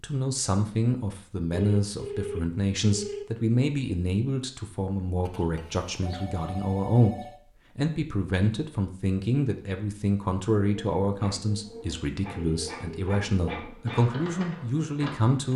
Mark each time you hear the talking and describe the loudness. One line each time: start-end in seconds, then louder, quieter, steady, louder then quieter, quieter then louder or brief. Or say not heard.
0.0-15.5 steady.